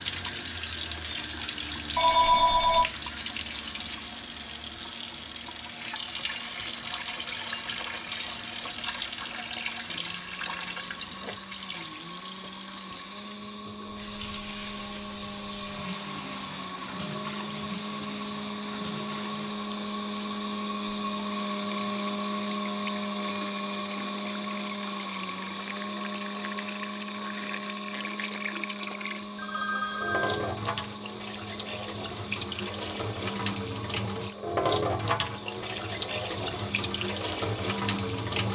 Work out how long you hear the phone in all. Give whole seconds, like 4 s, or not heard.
2 s.